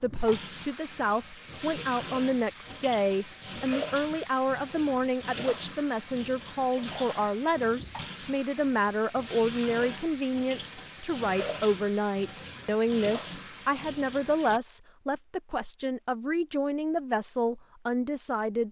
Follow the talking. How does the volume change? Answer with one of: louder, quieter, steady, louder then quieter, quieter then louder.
steady.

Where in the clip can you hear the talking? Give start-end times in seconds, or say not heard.
0.0-18.6.